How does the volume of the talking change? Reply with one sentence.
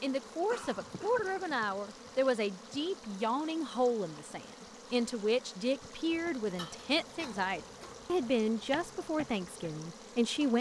The volume of the talking stays about the same.